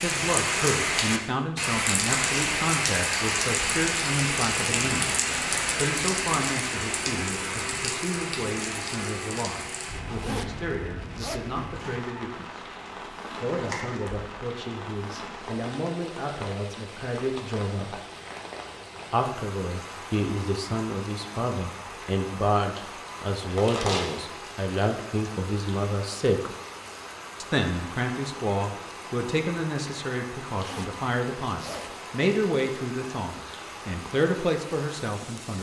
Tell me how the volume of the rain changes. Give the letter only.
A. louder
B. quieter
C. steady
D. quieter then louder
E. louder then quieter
B.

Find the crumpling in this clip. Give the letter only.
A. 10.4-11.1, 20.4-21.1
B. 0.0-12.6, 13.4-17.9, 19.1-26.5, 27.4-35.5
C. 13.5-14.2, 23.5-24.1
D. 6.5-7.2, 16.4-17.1
C.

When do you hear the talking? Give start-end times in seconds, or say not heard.
0.0-12.6, 13.4-17.9, 19.1-26.5, 27.4-35.5.